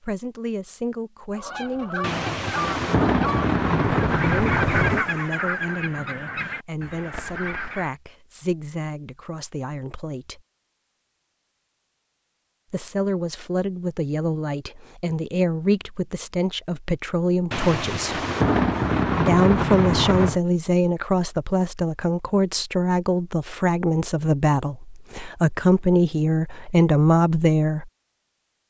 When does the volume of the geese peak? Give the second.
5 s.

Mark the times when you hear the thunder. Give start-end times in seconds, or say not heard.
2.0-5.0, 17.5-20.4.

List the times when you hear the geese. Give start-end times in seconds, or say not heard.
1.3-7.9.